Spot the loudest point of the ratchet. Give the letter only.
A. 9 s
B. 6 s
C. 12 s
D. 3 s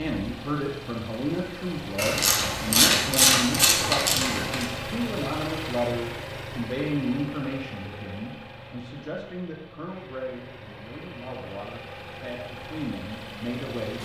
D.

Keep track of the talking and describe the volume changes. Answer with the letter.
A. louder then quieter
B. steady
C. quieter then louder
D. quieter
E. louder
D.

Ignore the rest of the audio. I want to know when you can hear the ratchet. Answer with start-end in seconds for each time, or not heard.
1.9-4.7.